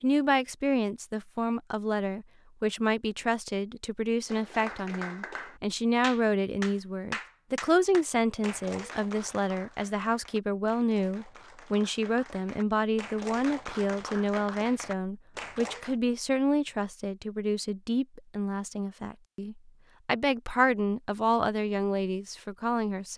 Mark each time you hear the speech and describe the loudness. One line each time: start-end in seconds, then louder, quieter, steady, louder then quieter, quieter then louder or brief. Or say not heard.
0.0-23.1 steady.